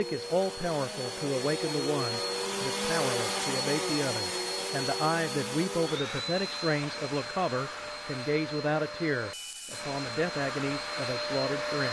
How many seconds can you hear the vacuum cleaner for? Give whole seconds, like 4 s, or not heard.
12 s.